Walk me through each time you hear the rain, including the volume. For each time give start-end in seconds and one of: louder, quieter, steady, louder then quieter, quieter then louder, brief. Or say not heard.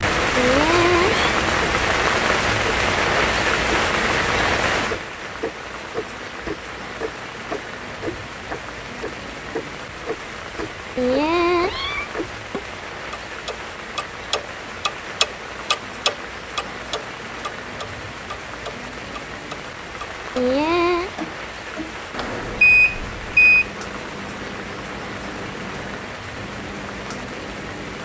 0.0-28.0 quieter.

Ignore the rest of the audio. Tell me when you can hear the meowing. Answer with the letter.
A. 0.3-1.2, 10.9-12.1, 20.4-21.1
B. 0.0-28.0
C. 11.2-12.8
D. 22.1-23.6
A.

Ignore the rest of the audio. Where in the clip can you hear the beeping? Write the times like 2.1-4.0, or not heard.
22.1-23.6.